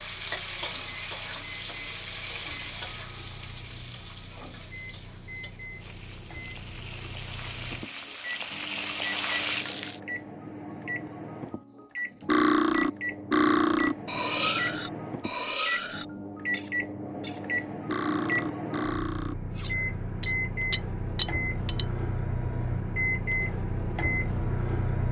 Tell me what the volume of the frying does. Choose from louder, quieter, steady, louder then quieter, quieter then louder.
quieter then louder.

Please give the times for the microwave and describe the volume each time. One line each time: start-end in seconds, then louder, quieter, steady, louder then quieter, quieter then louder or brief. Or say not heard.
0.0-25.0 louder.